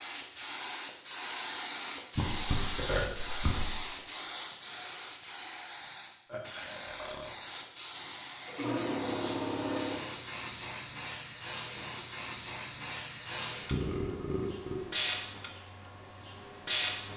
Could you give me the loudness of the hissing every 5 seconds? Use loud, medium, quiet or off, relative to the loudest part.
loud, loud, medium, loud.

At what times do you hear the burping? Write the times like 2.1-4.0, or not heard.
2.1-3.8, 6.2-7.3, 13.7-14.9.